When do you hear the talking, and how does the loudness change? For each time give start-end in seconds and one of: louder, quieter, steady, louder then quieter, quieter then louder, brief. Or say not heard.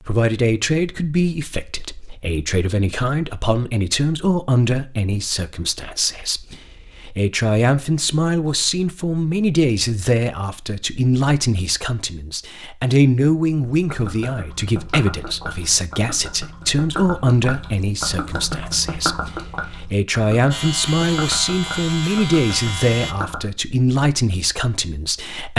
0.1-25.5 steady.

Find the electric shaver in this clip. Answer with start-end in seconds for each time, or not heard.
20.5-23.1.